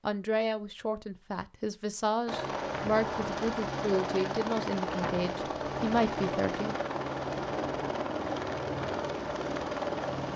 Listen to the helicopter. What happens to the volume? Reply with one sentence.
The loudness of the helicopter stays about the same.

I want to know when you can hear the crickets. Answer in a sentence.
You can't hear the crickets here.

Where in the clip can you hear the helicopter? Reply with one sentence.
You can hear the helicopter from 2.2 to 10.3 s.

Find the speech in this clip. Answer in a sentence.
The speech can be heard from 0.1 to 6.8 s.